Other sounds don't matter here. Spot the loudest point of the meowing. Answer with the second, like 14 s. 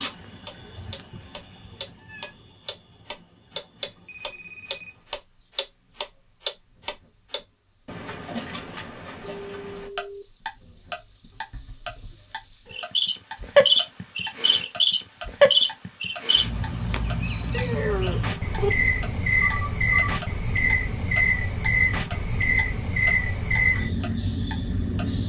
18 s.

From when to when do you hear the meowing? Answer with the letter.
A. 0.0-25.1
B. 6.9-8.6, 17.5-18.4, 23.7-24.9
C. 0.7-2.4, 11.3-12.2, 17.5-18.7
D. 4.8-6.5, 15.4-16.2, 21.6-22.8
C.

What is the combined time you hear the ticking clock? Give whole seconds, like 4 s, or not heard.
25 s.